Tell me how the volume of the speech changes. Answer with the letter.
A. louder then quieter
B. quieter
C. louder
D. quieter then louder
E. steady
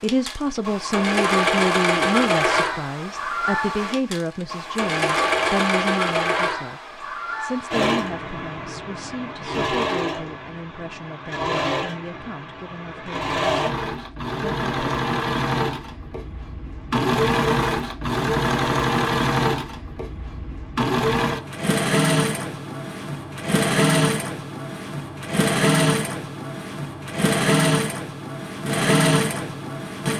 B.